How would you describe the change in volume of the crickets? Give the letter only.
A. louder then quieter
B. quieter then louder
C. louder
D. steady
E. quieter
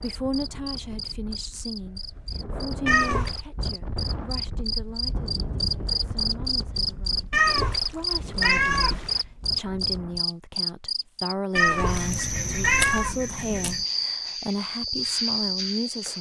C.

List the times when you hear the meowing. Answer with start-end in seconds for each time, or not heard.
2.9-3.4, 7.3-9.2, 11.6-13.2.